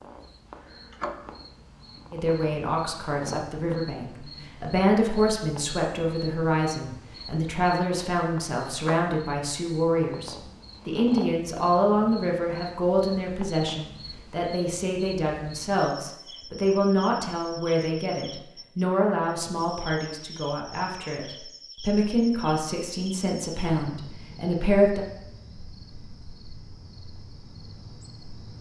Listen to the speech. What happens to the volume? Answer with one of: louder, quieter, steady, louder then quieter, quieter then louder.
steady.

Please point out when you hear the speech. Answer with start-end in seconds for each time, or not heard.
2.1-25.1.